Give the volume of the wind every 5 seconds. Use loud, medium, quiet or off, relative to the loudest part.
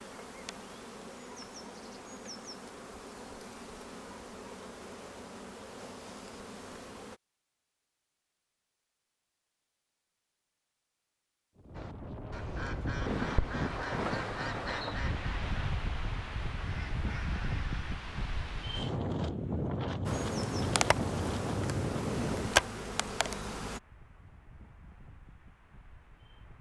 off, off, loud, loud, loud, quiet.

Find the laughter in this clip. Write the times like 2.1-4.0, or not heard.
not heard.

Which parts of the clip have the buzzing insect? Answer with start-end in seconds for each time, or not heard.
0.0-7.2, 20.1-23.8.